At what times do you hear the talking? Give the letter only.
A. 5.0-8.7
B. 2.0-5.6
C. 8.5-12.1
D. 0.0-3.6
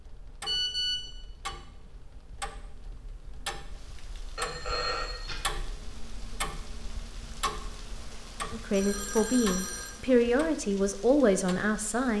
C.